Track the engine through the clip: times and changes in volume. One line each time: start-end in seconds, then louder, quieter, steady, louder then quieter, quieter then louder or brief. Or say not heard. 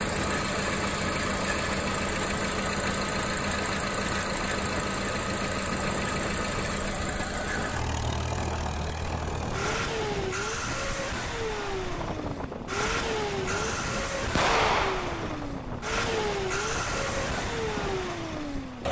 0.0-18.8 steady.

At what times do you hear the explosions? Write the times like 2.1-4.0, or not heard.
14.3-15.2.